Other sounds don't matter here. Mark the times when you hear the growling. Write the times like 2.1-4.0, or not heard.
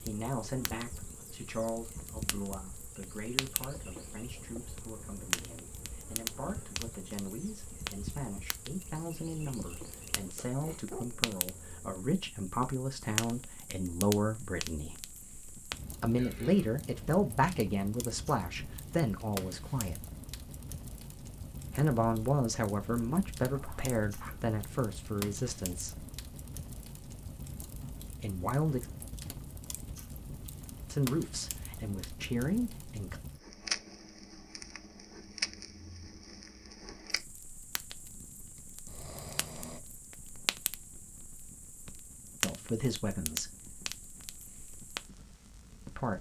10.3-12.0, 23.5-24.4, 38.9-39.8.